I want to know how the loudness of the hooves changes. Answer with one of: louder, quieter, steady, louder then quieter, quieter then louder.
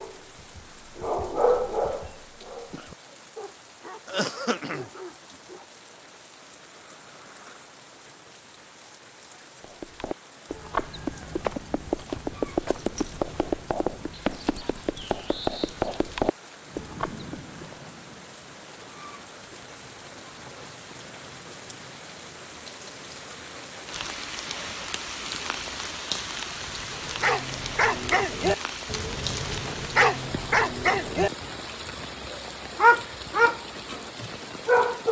steady.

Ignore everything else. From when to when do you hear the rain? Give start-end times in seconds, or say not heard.
0.0-35.0.